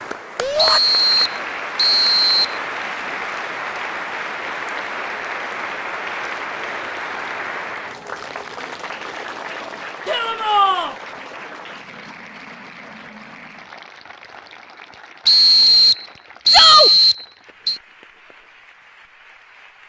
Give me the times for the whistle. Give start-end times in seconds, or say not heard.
0.6-2.6, 15.2-17.8.